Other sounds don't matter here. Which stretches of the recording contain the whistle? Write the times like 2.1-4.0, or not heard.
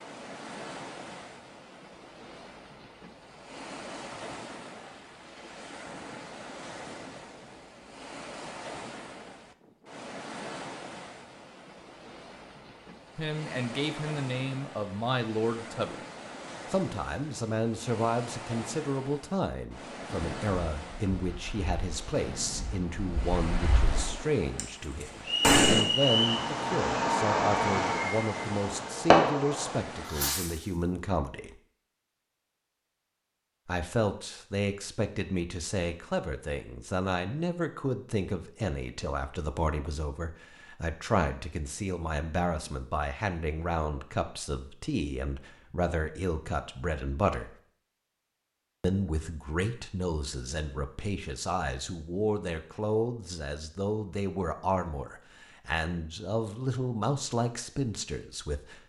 25.2-26.4.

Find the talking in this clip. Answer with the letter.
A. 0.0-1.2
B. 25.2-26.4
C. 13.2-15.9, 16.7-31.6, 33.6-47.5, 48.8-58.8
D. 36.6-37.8
C.